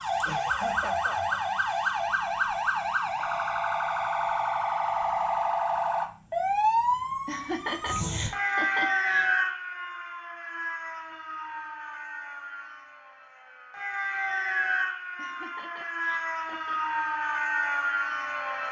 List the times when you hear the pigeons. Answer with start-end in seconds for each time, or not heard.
not heard.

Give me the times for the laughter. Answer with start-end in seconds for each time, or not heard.
0.2-1.4, 7.2-9.2, 15.2-16.8.